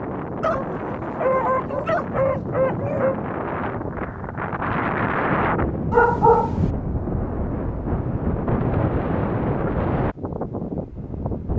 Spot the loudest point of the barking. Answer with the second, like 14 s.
6 s.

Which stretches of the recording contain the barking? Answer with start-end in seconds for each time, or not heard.
0.4-3.1, 5.9-6.7.